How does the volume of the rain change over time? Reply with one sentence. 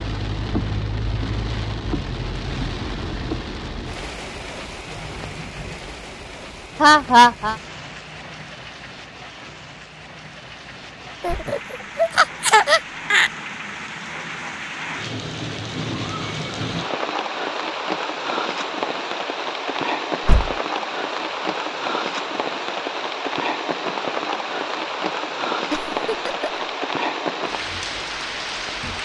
The loudness of the rain goes down, then up.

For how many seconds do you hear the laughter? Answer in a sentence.
The laughter can be heard for 4 seconds in total.